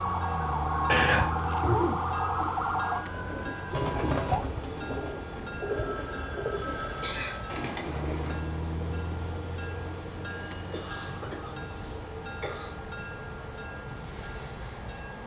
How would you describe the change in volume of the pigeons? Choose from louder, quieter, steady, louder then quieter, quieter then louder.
quieter.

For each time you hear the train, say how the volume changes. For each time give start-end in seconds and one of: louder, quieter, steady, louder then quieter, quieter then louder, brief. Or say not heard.
0.0-15.2 steady.